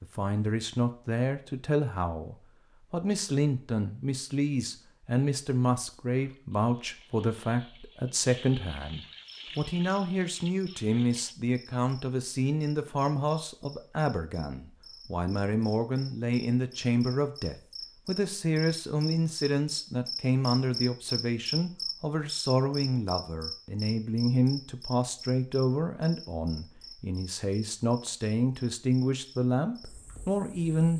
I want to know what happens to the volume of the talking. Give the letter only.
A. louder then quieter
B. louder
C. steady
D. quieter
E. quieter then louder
C.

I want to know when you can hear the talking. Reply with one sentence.
You can hear the talking from 0.0 to 30.9 s.